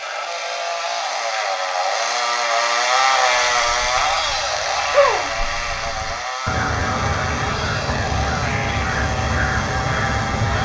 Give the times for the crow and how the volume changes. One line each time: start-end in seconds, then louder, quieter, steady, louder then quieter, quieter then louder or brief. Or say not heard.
3.1-10.6 louder.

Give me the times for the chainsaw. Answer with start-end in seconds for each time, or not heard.
0.0-10.6.